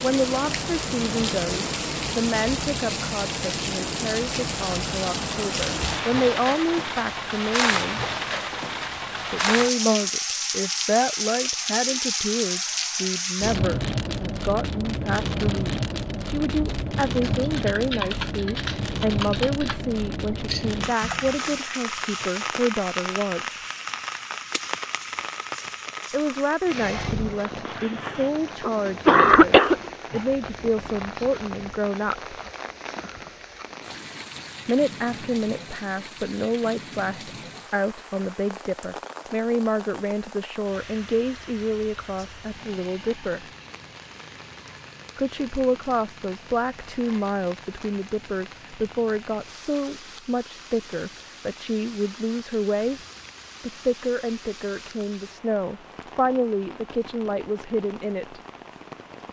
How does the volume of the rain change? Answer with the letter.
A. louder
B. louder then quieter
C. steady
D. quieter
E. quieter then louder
D.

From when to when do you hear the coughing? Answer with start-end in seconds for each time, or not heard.
27.4-29.8.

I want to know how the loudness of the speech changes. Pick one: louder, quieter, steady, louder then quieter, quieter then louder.
steady.